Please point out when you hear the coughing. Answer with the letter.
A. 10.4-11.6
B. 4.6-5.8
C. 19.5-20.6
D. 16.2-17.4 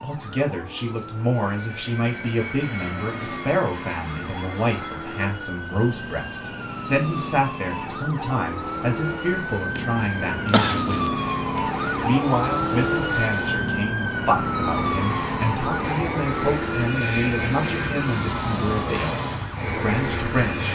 A.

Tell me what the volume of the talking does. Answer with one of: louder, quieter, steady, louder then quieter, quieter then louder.
steady.